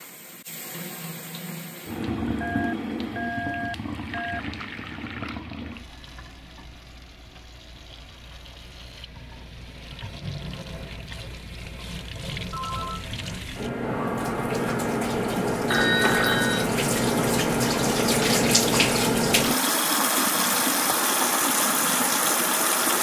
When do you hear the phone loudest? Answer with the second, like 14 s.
16 s.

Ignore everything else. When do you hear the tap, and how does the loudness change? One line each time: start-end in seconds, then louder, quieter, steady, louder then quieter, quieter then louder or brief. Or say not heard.
0.0-22.9 quieter then louder.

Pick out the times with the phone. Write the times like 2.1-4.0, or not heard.
2.4-4.4, 12.5-13.1, 15.7-16.7.